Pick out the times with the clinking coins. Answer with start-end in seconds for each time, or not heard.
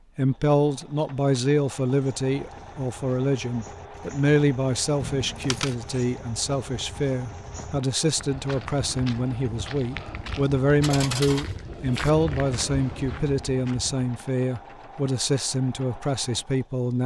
5.0-5.8, 10.8-12.1.